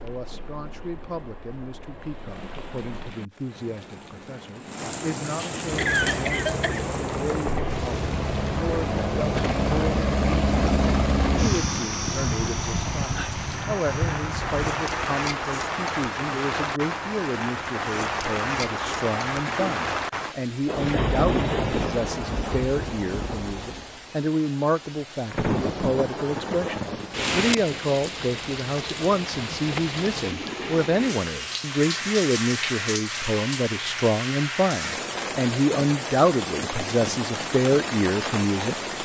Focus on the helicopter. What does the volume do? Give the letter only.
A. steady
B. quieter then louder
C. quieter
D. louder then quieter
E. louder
D.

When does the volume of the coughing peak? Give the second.
6 s.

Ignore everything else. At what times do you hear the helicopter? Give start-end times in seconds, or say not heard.
5.7-14.9.